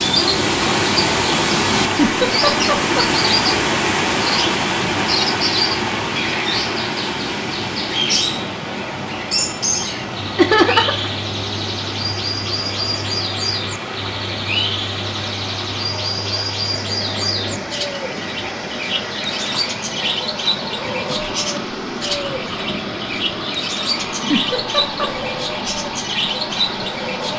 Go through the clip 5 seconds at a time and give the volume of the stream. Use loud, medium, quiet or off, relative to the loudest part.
loud, medium, medium, medium, medium, medium.